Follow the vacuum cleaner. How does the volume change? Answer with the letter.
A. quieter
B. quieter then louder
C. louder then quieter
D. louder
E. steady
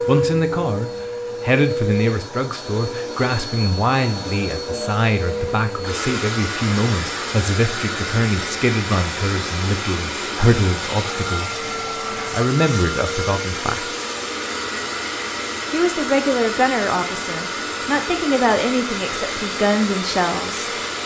E.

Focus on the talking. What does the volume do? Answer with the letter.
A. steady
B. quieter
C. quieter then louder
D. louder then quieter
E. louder
A.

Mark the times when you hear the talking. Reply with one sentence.
You can hear the talking from 0.1 to 13.9 s and from 15.7 to 20.7 s.